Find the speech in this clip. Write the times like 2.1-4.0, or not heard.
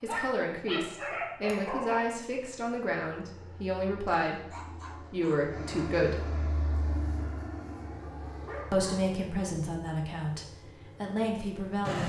0.0-6.2, 8.7-12.0.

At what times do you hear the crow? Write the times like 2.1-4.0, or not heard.
not heard.